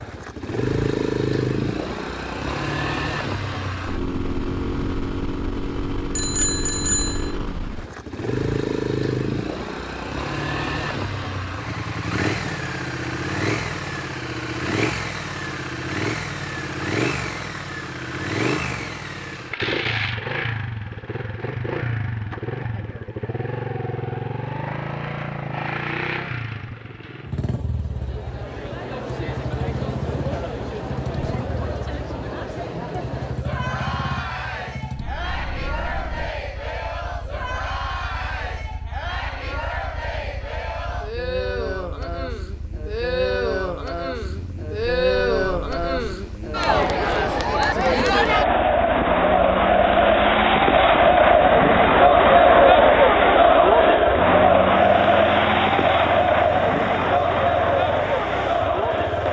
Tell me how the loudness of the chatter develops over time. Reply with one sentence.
The volume of the chatter goes up.